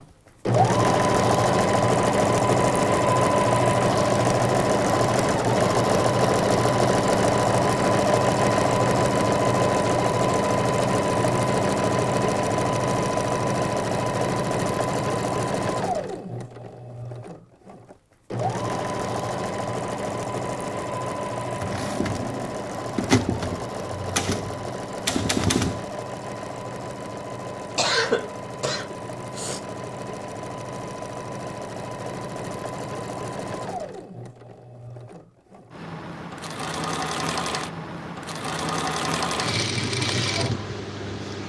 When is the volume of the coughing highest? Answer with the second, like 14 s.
28 s.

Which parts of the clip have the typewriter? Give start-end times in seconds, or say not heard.
21.6-25.9.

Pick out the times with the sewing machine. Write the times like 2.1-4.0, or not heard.
0.5-41.4.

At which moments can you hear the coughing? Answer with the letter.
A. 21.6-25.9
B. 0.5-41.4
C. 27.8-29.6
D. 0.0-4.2
C.